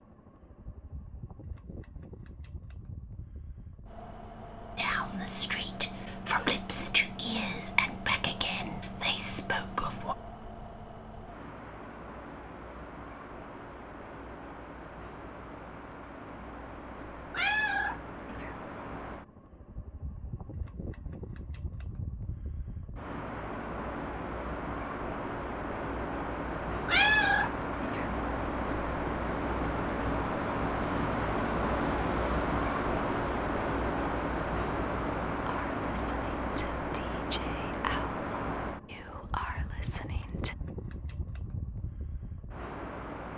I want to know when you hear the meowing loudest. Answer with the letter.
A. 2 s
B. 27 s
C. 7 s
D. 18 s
B.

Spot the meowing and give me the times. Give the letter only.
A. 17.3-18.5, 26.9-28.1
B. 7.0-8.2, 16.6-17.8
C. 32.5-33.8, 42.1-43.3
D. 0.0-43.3
A.